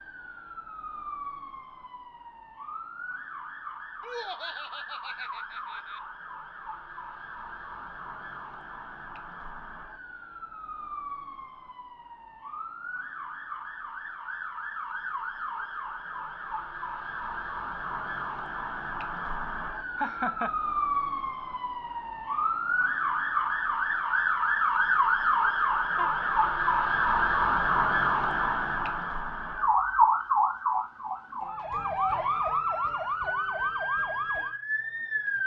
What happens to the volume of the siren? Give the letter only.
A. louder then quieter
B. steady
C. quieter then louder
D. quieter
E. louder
E.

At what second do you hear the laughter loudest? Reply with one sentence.
The loudest moment of the laughter is at 20 seconds.